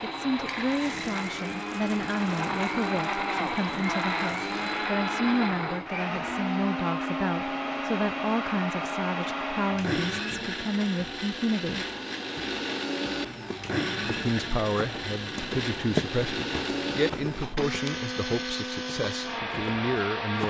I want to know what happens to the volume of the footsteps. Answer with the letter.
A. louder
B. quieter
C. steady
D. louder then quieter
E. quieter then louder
D.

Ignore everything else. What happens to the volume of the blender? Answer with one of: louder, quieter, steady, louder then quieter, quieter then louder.
steady.